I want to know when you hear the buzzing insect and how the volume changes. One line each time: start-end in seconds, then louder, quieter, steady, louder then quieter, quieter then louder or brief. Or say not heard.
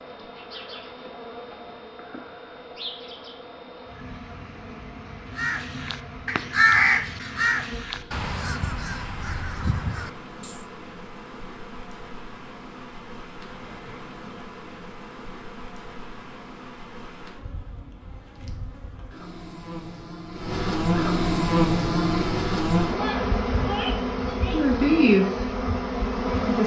0.0-26.6 louder.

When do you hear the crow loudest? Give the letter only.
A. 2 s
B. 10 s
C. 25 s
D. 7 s
D.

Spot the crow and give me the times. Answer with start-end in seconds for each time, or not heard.
5.3-10.7.